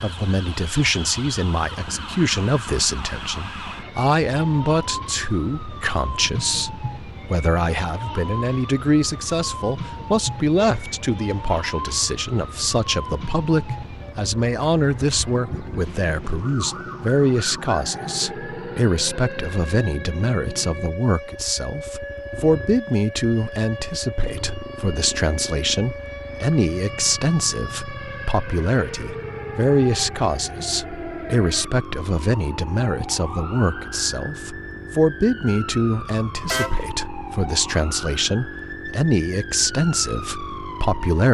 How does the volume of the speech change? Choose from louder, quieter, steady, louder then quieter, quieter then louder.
steady.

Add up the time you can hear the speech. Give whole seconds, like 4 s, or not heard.
41 s.